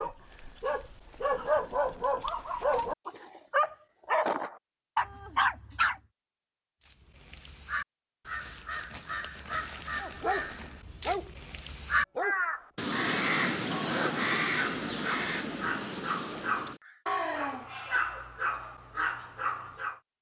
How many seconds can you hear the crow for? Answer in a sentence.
The crow can be heard for 10 seconds in total.